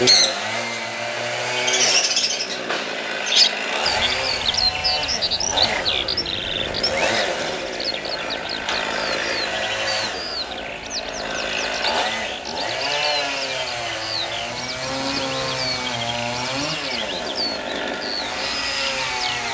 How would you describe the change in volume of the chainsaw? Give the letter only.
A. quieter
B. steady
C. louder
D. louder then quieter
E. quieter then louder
B.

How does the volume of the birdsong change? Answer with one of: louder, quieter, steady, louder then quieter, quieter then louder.
quieter.